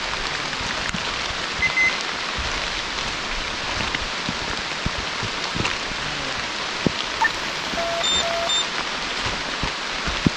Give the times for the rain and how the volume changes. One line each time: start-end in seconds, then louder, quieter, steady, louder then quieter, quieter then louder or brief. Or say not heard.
0.0-10.3 steady.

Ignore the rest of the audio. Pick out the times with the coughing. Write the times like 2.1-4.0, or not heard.
not heard.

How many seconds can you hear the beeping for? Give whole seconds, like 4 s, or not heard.
2 s.